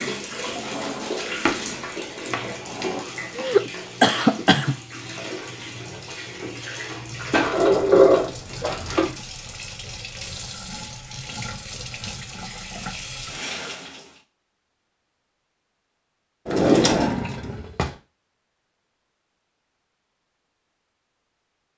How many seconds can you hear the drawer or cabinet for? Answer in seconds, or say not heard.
5 s.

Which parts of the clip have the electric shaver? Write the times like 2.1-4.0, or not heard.
not heard.